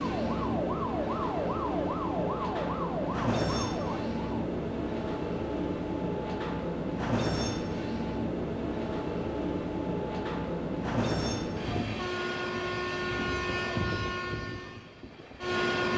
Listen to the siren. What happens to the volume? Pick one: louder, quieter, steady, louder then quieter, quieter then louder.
steady.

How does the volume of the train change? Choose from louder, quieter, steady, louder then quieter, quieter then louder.
steady.